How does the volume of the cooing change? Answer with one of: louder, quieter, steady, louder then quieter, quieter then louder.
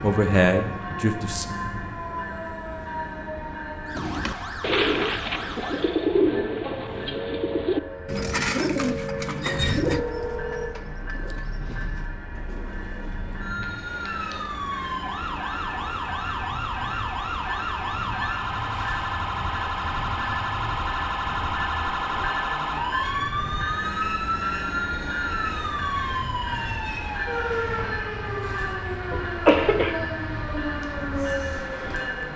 quieter.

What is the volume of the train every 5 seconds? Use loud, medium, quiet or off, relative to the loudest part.
medium, medium, medium, loud, loud, loud, loud.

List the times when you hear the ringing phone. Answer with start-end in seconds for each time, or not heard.
9.8-10.7.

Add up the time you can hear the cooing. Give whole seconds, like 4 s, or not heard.
9 s.